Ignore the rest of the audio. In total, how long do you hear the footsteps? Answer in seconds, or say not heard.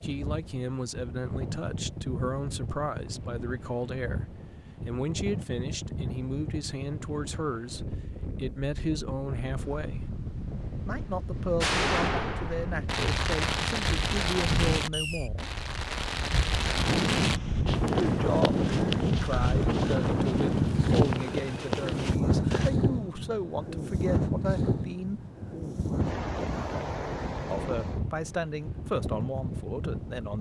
5 s.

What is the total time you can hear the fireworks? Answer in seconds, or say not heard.
6 s.